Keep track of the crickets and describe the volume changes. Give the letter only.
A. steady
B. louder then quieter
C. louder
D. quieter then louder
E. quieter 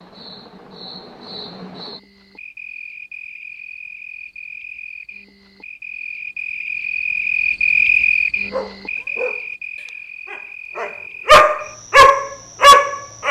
B.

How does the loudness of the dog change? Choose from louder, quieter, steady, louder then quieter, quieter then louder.
quieter then louder.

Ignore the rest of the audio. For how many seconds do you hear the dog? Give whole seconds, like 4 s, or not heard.
5 s.